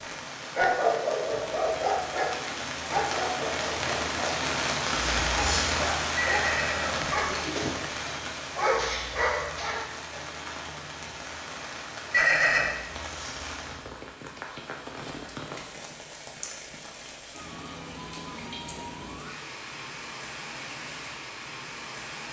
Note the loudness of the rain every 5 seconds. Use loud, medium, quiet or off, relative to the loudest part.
loud, loud, medium, medium, medium.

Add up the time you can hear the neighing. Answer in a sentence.
You can hear the neighing for 2 seconds altogether.